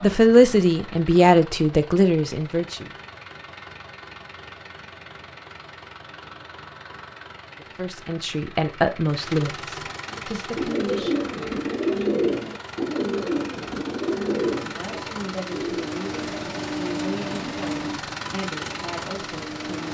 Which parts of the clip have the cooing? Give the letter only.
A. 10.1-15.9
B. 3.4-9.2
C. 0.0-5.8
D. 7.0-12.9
A.